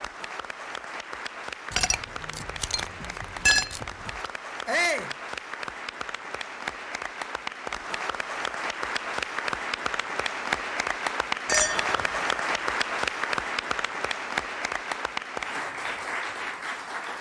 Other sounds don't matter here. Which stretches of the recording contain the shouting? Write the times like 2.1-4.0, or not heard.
4.7-5.1.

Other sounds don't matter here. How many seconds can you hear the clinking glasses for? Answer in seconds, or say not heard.
4 s.